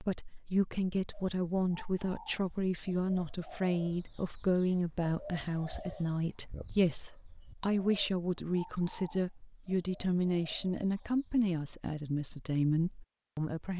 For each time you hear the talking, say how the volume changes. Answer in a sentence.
You can hear the talking from 0.0 to 13.7 s, at a steady volume.